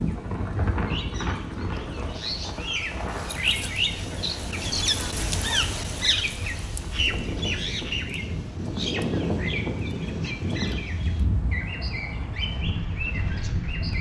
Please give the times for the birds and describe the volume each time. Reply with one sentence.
You can hear the birds from 0.0 to 13.9 s, getting louder then quieter.